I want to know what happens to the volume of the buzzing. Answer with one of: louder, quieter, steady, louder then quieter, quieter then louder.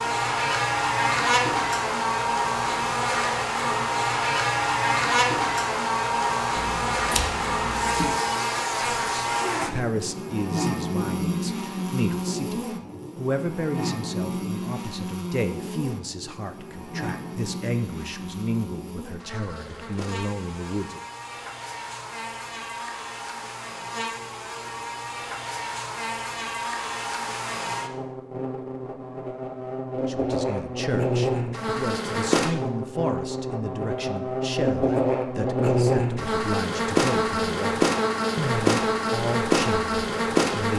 quieter then louder.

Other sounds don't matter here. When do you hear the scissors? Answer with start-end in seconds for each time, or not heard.
6.5-8.2.